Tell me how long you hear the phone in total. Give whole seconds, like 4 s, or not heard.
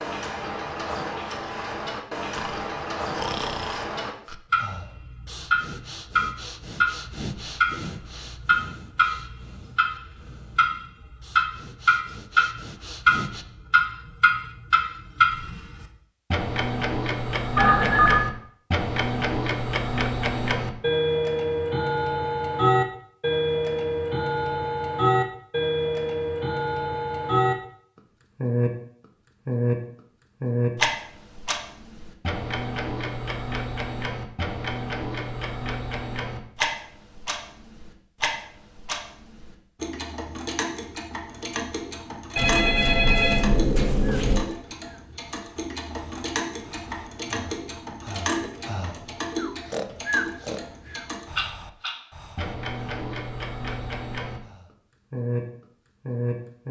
3 s.